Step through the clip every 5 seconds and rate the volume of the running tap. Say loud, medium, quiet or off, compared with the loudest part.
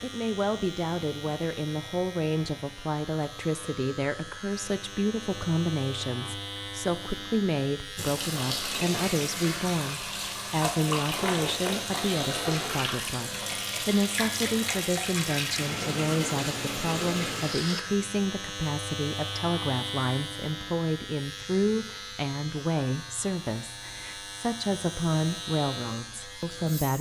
off, loud, loud, loud, off, off.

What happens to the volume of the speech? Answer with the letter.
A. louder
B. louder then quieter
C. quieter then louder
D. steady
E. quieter
D.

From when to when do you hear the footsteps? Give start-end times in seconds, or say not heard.
not heard.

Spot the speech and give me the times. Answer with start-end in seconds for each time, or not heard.
0.0-26.9.